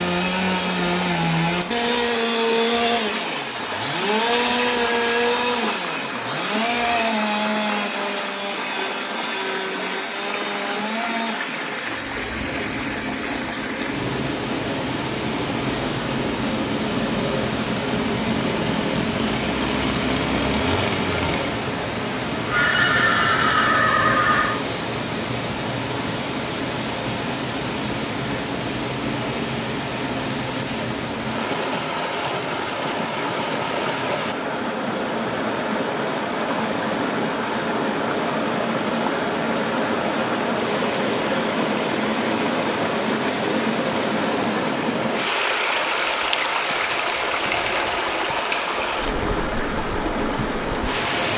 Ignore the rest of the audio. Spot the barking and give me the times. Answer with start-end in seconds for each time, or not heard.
not heard.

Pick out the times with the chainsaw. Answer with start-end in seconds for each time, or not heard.
0.0-21.6.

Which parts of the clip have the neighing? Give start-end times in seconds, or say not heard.
22.4-24.6.